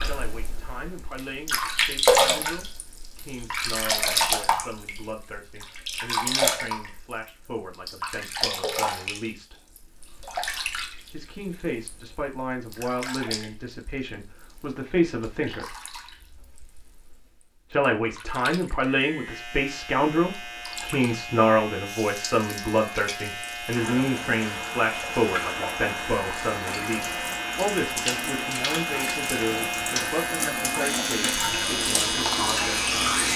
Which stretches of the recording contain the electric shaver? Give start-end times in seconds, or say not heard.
18.8-33.3.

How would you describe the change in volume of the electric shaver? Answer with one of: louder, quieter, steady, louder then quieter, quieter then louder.
louder.